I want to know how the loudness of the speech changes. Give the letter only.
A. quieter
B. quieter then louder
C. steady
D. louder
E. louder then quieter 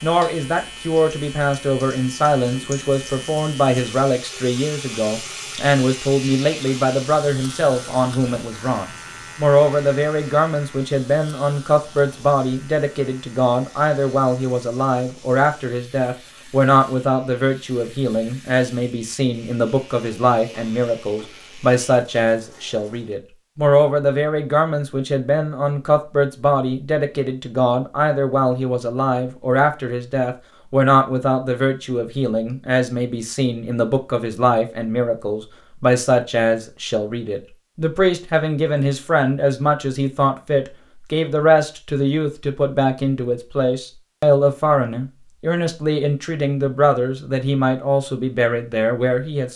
C.